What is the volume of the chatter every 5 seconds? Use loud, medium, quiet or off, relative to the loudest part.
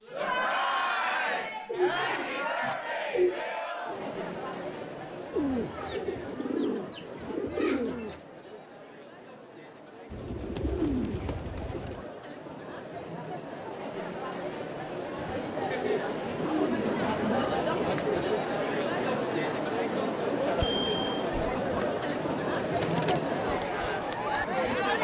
loud, quiet, medium, loud, loud.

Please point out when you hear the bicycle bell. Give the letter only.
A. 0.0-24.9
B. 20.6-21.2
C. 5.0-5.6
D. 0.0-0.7
B.